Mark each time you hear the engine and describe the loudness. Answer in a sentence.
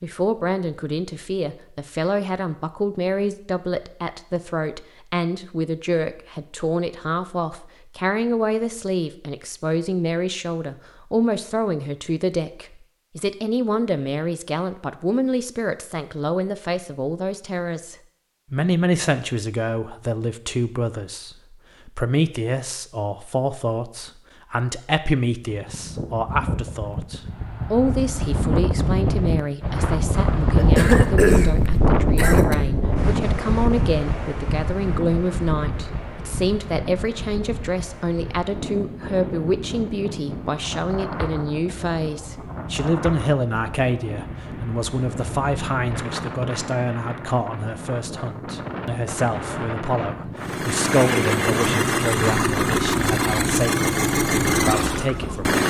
The engine can be heard from 50.4 to 55.6 s, at a steady volume.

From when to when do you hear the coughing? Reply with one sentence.
The coughing can be heard from 30.6 to 32.5 s.